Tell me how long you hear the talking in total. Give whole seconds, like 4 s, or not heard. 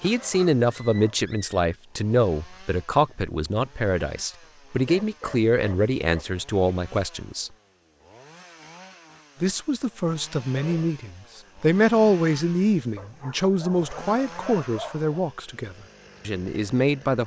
15 s.